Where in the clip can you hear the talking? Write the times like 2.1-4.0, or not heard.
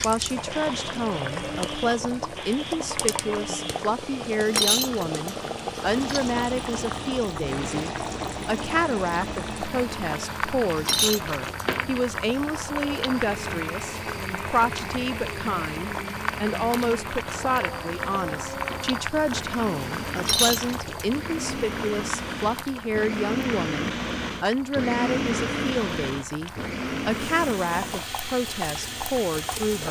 0.0-29.8.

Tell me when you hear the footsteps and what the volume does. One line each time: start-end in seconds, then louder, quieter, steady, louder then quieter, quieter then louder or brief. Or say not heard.
not heard.